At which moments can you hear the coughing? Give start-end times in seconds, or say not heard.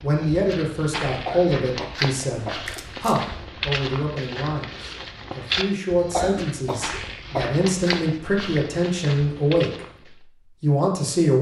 1.1-2.6, 6.0-7.5.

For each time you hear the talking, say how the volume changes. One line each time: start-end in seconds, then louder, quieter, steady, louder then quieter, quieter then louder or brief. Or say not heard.
0.0-9.8 quieter then louder
10.6-11.3 brief.